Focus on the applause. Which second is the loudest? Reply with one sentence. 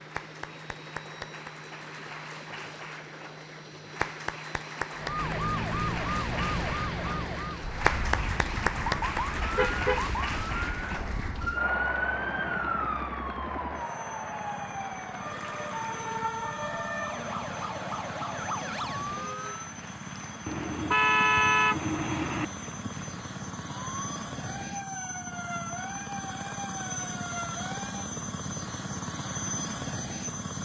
The volume of the applause peaks at 8 seconds.